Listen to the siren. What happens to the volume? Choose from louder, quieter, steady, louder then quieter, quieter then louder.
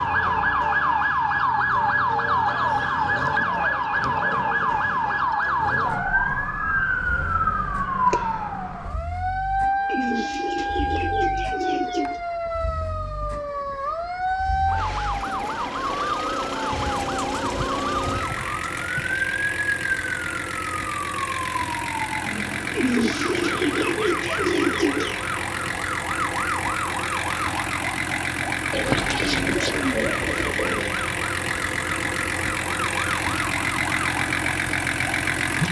quieter.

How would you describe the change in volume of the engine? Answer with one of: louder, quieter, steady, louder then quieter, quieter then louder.
quieter then louder.